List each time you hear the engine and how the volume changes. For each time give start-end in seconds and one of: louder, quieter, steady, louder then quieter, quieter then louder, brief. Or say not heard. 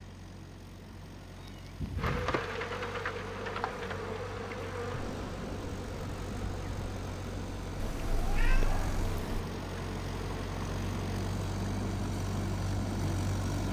0.0-13.6 louder.